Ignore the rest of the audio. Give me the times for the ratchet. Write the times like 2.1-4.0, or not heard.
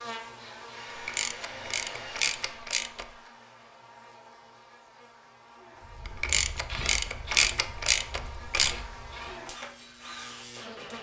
0.9-3.1, 6.0-8.8.